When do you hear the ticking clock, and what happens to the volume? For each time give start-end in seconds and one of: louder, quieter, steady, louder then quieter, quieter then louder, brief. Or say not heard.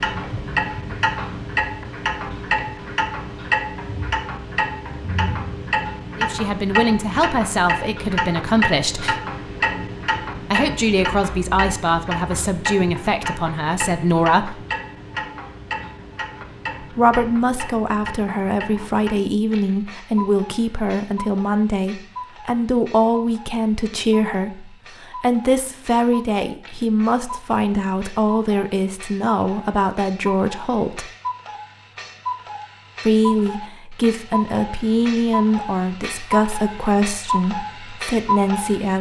0.0-38.9 quieter then louder.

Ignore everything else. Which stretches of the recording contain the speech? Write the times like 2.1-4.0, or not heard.
6.2-9.2, 10.4-14.7, 16.8-31.1, 33.0-38.9.